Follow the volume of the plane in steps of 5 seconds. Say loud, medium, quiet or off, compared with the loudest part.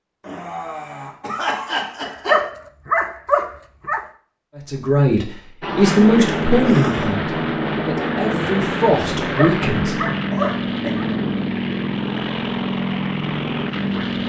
off, loud, loud.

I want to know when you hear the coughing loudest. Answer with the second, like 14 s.
2 s.